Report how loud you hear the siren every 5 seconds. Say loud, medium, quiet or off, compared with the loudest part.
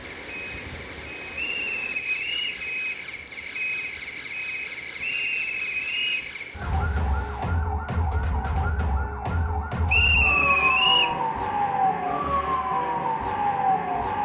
medium, medium, loud.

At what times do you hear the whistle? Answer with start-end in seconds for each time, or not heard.
1.3-2.6, 5.0-6.2, 9.8-11.2.